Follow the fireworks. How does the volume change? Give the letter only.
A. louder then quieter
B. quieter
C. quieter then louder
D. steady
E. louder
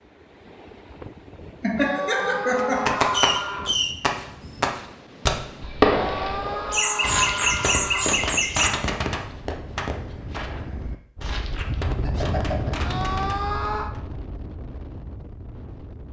B.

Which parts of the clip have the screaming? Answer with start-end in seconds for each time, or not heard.
1.8-3.8, 5.8-8.2, 12.8-13.9.